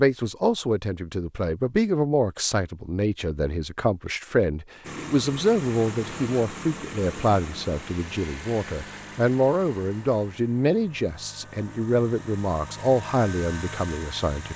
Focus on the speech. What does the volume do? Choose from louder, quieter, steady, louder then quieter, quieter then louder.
steady.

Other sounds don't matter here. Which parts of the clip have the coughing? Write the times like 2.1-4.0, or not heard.
not heard.